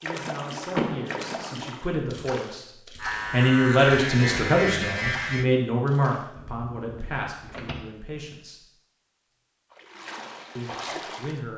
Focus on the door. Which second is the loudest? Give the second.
1 s.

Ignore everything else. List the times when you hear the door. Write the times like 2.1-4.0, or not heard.
0.7-1.6, 6.3-7.8.